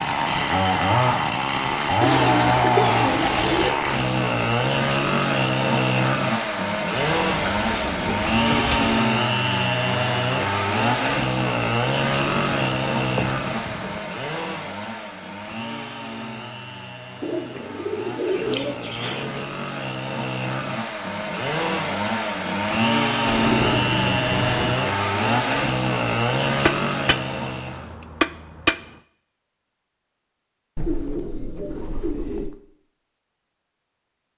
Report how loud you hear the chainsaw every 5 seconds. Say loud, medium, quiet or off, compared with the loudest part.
loud, loud, loud, quiet, loud, loud, off.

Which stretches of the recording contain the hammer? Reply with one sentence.
You can hear the hammer from 26.6 to 28.9 s.